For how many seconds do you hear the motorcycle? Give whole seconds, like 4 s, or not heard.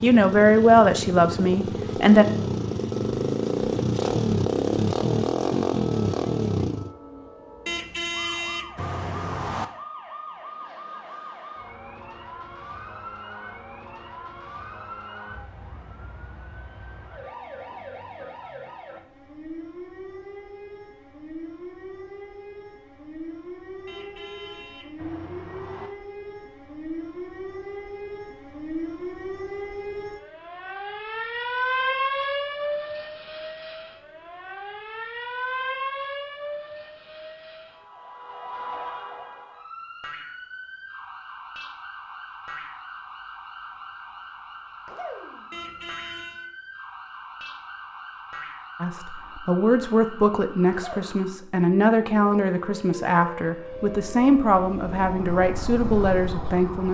10 s.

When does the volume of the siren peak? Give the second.
32 s.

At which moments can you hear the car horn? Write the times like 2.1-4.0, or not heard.
7.7-9.7, 23.9-25.9, 45.5-46.5.